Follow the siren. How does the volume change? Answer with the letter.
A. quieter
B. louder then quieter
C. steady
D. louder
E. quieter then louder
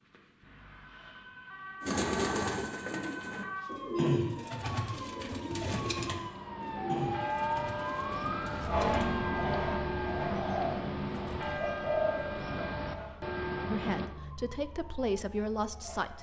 B.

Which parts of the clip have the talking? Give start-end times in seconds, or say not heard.
13.7-16.1.